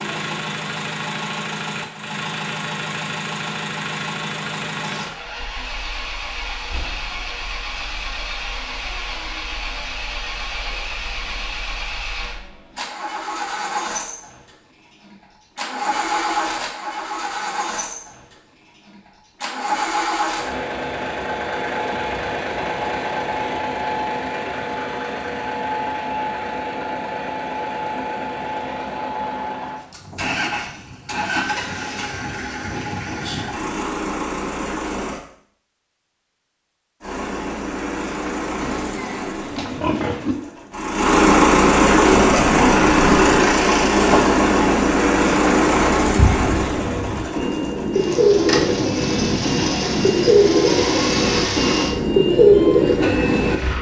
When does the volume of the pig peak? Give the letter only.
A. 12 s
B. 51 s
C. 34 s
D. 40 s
D.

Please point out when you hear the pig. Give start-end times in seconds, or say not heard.
38.6-40.4.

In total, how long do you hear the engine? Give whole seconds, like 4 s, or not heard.
52 s.